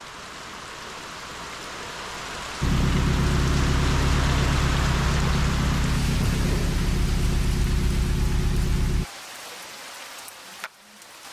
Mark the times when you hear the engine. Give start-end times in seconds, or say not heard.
2.6-9.1.